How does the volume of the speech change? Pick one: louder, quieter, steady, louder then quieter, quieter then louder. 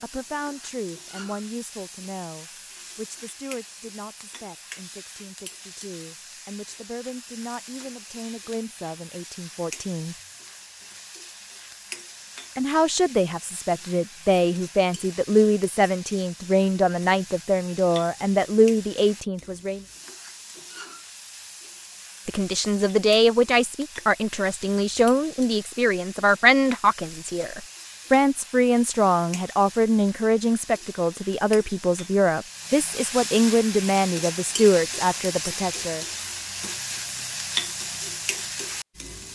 louder.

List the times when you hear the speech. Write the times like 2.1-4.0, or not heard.
0.0-10.2, 12.6-19.9, 22.2-36.0.